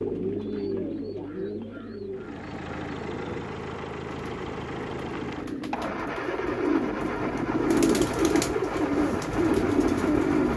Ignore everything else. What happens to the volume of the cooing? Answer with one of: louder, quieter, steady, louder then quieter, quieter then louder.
quieter then louder.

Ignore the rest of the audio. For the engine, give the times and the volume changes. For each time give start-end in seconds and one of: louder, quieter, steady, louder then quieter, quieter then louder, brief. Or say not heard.
2.1-10.5 steady.